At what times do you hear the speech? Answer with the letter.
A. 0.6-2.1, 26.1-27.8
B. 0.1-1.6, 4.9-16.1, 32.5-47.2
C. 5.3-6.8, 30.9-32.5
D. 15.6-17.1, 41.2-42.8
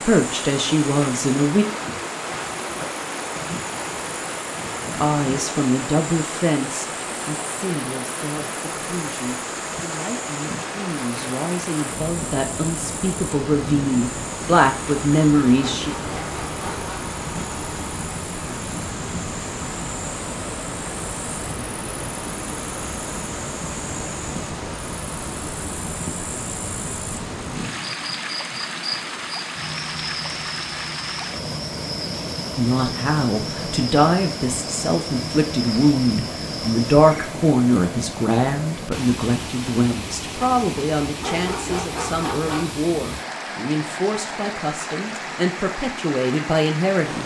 B.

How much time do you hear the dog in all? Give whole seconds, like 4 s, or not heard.
3 s.